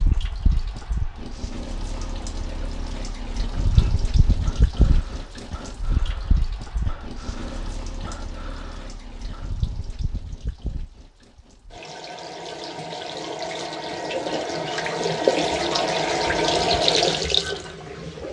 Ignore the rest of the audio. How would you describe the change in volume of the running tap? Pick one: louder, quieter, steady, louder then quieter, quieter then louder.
quieter then louder.